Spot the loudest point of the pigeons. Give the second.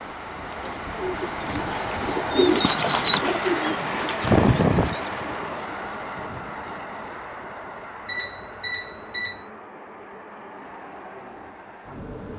3 s.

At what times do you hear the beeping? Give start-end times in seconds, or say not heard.
8.1-9.4.